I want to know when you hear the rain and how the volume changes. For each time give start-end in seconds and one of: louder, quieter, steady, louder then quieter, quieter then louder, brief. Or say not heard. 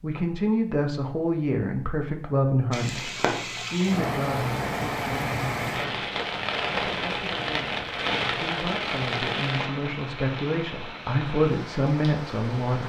2.7-12.8 quieter.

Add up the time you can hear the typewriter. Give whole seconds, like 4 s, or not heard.
not heard.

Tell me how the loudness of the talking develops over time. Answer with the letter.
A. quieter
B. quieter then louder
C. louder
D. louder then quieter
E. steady
B.